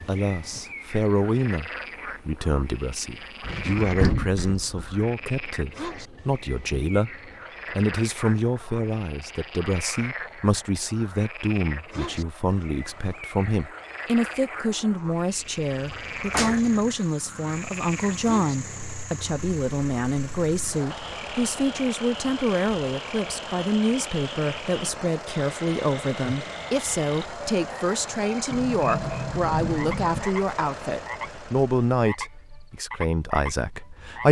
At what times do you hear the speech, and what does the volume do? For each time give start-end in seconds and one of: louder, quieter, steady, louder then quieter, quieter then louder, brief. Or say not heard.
0.1-34.2 steady.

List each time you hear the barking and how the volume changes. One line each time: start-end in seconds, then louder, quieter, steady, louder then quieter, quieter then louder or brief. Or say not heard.
not heard.